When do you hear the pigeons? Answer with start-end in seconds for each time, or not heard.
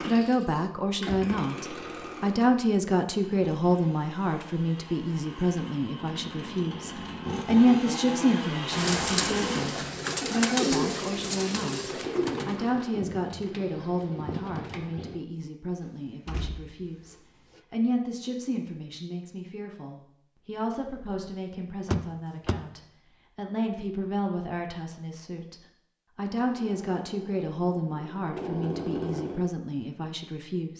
8.7-15.2.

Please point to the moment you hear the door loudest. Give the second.
22 s.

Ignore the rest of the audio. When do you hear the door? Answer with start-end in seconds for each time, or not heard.
0.5-1.4, 15.8-17.6, 21.9-22.6.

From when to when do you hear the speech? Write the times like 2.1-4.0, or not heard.
0.0-30.7.